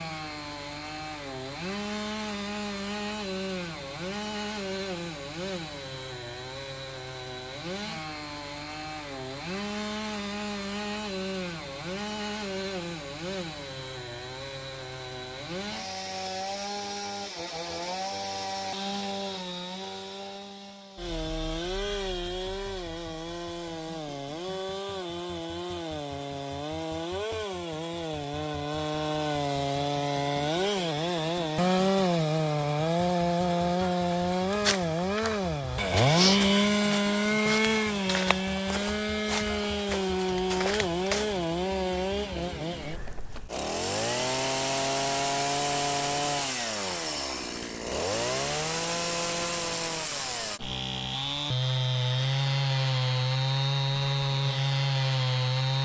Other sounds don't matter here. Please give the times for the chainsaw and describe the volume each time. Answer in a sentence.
The chainsaw can be heard from 0.0 to 55.8 s, getting louder.